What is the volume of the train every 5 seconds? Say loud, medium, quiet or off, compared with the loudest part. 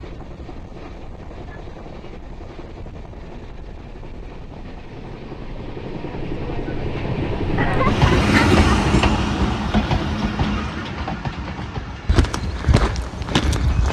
quiet, loud, medium.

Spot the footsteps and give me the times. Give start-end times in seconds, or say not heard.
11.6-13.8.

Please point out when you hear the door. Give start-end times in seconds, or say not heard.
not heard.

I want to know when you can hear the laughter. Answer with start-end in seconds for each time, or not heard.
7.5-8.8.